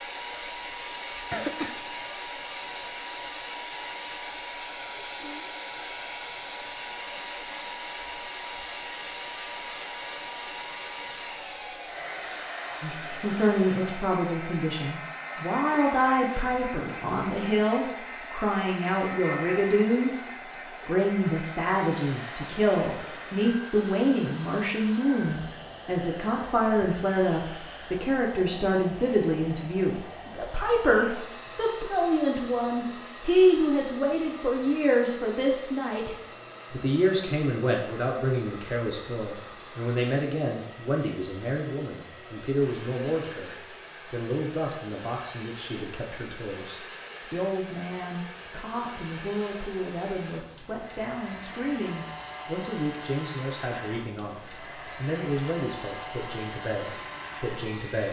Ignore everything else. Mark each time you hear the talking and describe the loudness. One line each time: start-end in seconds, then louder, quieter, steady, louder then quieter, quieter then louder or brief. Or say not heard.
12.8-20.2 steady
20.9-58.0 quieter.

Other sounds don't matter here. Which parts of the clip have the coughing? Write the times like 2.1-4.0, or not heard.
1.3-2.1.